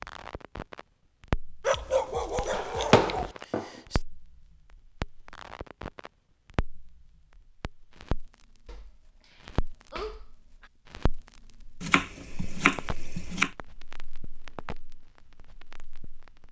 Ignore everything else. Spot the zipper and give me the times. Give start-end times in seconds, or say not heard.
not heard.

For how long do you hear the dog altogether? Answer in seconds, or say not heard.
4 s.